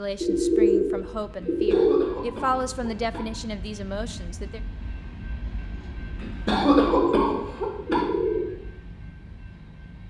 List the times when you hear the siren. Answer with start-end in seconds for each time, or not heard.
not heard.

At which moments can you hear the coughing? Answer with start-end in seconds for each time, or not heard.
1.5-3.2, 6.2-8.1.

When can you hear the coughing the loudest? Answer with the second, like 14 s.
7 s.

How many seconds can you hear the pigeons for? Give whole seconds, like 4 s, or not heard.
4 s.